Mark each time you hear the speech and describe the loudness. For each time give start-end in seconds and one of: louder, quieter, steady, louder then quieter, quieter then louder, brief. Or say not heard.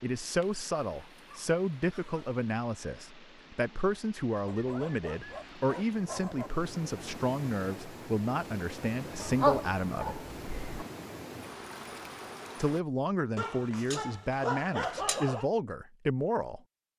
0.0-10.2 steady
12.6-16.6 steady.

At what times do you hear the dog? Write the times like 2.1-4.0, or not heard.
0.4-2.1, 4.5-6.5, 9.2-10.8, 13.3-15.4.